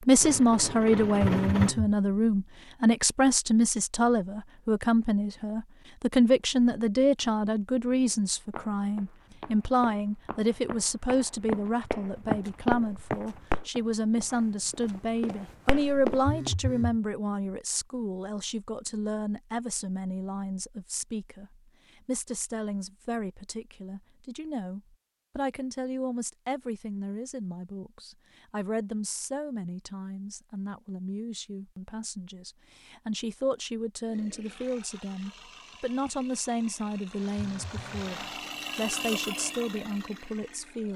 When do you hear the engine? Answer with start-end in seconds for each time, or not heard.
0.0-1.8, 34.0-40.9.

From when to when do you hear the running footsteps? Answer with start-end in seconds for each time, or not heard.
8.1-16.5.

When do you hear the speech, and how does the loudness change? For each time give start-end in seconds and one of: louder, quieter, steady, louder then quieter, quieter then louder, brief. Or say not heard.
0.1-40.9 quieter.